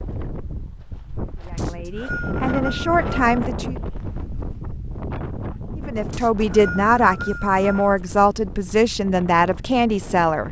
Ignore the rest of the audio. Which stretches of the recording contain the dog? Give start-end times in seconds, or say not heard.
not heard.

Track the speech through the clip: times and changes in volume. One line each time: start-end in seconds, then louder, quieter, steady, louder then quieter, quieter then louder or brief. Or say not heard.
1.4-3.8 brief
5.8-10.4 steady.